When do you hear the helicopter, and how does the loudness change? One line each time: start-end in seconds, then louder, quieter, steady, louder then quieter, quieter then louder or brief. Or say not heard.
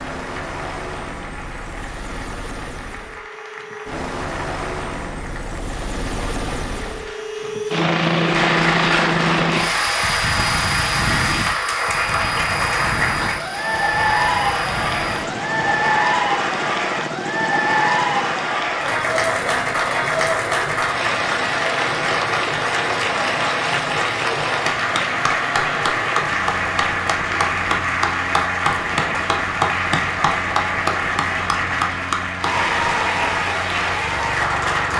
0.0-34.9 louder then quieter.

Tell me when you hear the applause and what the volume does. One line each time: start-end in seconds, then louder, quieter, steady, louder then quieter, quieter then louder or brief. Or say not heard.
0.0-34.9 louder.